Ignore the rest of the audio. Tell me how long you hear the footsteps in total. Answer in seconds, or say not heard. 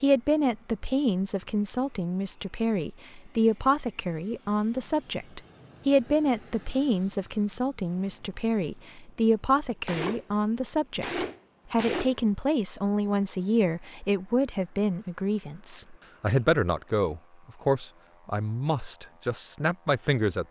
not heard.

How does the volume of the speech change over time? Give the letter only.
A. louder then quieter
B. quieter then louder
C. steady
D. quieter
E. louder
C.